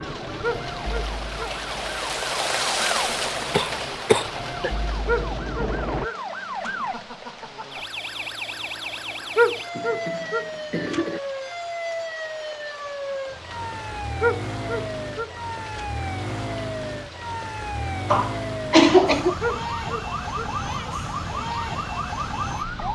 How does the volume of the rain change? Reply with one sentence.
The volume of the rain goes down.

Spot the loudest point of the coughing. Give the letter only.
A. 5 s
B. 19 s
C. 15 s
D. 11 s
B.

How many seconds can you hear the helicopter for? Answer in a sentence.
The helicopter can be heard for 6 seconds in total.